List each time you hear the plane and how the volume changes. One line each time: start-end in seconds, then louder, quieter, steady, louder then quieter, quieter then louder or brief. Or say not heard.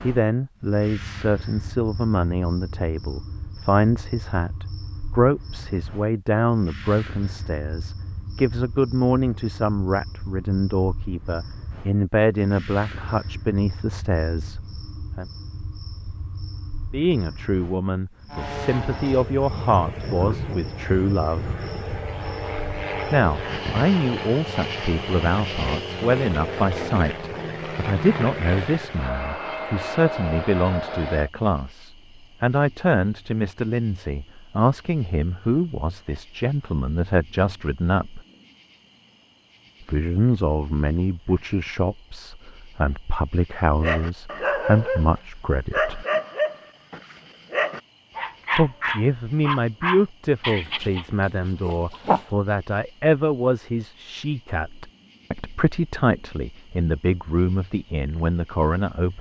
18.3-31.3 steady.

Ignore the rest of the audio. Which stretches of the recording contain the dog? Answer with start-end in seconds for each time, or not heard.
43.8-52.3.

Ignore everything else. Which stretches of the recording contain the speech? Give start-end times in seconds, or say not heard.
0.0-15.2, 16.9-21.4, 23.1-38.2, 39.9-46.0, 48.5-59.1.